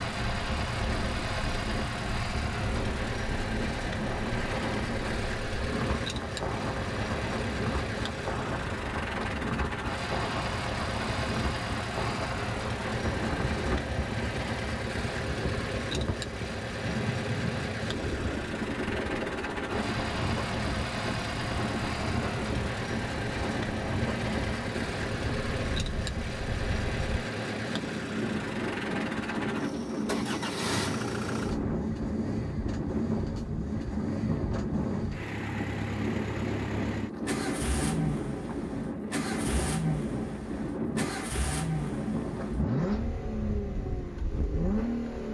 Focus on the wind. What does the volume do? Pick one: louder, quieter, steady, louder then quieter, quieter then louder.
steady.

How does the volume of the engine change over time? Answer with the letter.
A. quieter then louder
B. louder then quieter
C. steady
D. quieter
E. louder
C.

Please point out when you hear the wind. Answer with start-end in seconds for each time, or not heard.
0.0-45.0.